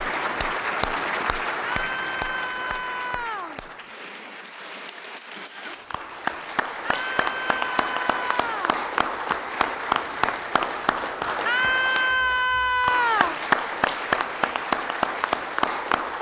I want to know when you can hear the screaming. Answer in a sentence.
The screaming can be heard from 1.6 to 3.6 s, from 6.8 to 8.8 s and from 11.4 to 13.3 s.